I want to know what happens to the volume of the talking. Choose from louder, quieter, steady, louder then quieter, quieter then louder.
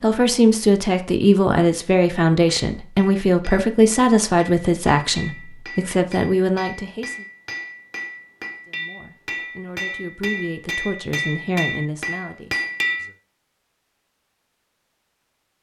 quieter.